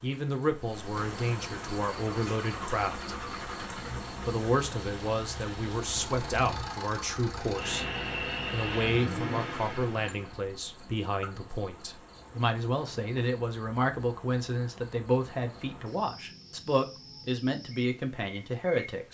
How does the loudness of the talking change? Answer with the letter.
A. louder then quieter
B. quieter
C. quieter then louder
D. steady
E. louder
D.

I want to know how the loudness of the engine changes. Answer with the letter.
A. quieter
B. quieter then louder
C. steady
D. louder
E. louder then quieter
D.